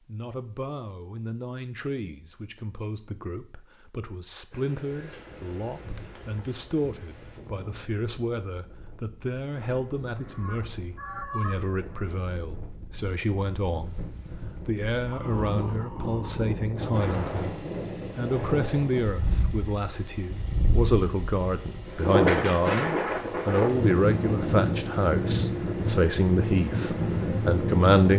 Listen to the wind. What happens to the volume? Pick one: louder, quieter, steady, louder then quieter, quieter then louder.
louder.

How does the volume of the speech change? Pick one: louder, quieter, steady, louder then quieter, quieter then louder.
louder.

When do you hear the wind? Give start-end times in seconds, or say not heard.
4.5-28.1.